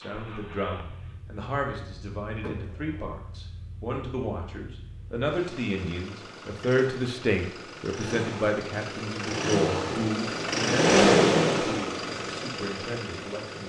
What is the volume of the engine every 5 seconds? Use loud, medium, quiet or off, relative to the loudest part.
quiet, medium, loud.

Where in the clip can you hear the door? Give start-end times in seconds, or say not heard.
2.4-3.0.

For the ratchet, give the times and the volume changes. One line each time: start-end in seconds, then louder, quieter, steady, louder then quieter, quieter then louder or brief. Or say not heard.
not heard.